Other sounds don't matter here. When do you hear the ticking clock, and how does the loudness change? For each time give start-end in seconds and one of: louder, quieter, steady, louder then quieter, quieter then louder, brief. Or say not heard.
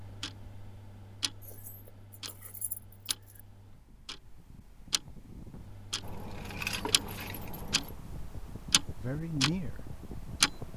0.0-10.7 louder.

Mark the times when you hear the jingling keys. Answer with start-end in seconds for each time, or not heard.
1.4-3.4, 6.0-8.0.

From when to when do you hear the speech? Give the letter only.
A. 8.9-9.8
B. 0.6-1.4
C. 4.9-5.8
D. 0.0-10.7
A.